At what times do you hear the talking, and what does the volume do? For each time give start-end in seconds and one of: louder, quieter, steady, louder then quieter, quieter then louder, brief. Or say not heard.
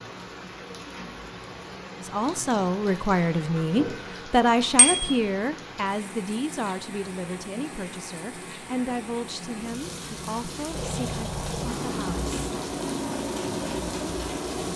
2.0-12.2 quieter.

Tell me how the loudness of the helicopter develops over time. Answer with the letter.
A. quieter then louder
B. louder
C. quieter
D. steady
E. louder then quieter
D.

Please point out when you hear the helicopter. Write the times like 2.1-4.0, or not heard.
10.7-14.7.